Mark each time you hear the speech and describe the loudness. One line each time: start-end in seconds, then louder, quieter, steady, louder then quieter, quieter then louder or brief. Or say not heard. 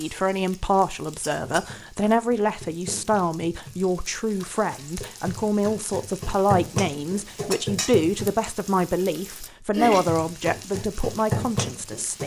0.0-12.2 steady.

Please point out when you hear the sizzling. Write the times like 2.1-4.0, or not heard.
0.0-12.2.